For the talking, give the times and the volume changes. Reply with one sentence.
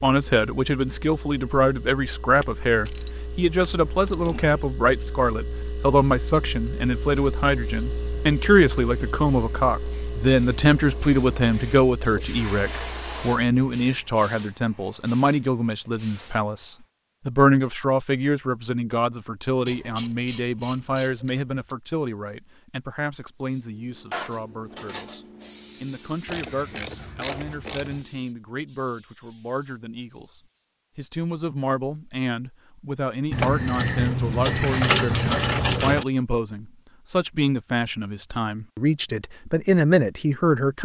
The talking can be heard from 0.0 to 25.2 s, getting quieter; and from 25.8 to 40.8 s, getting louder.